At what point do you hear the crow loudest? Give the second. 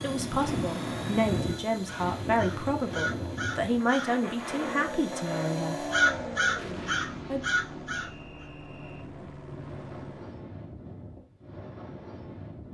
6 s.